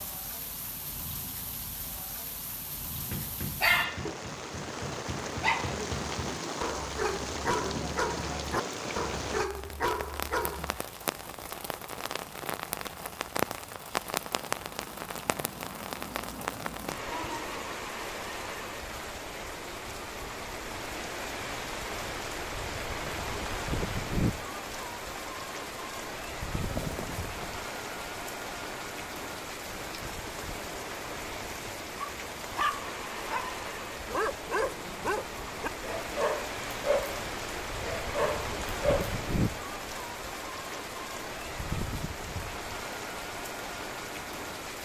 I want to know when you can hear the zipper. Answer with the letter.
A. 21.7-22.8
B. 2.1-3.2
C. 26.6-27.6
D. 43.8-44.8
C.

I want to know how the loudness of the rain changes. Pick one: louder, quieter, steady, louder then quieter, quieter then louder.
steady.